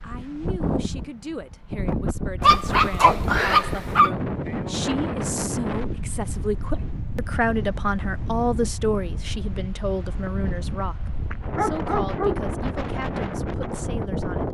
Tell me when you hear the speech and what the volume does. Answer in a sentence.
You can hear the speech from 0.0 to 14.4 s, getting louder then quieter.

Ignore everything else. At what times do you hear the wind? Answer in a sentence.
The wind can be heard from 0.0 to 14.4 s.